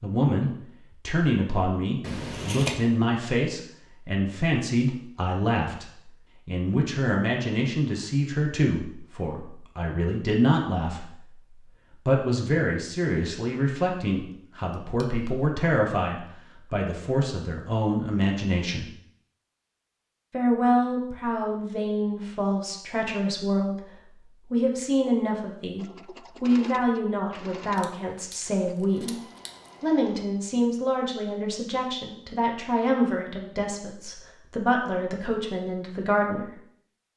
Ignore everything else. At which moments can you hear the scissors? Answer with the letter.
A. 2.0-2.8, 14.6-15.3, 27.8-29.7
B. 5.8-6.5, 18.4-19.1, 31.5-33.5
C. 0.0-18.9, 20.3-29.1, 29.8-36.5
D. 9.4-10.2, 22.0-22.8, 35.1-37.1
A.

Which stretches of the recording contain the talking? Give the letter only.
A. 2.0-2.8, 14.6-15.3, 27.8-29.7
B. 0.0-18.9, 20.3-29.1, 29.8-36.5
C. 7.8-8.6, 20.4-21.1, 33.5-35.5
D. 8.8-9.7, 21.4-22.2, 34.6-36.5
B.